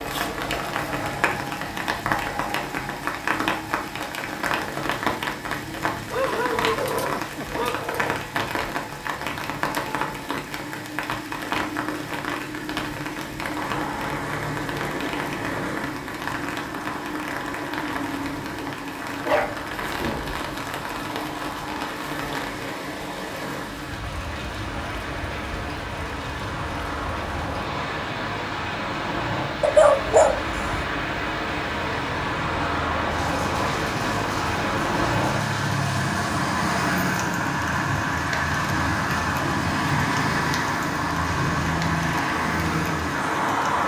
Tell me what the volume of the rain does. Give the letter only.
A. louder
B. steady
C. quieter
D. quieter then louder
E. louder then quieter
C.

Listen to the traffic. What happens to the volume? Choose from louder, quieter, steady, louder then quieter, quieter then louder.
louder.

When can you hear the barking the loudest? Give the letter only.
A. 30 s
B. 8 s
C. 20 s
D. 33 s
A.